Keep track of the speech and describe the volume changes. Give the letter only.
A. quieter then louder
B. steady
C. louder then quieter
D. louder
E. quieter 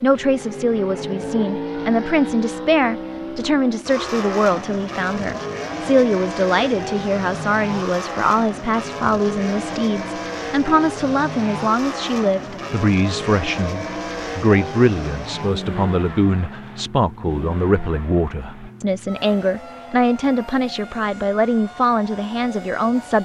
B.